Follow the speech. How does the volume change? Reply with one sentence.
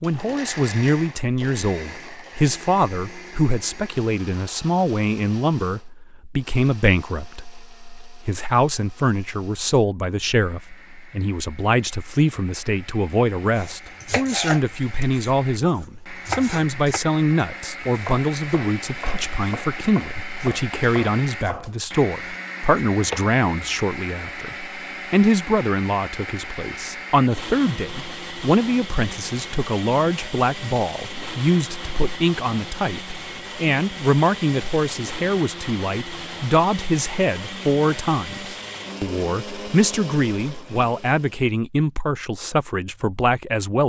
The volume of the speech stays about the same.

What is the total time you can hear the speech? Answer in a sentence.
The speech can be heard for 44 seconds in total.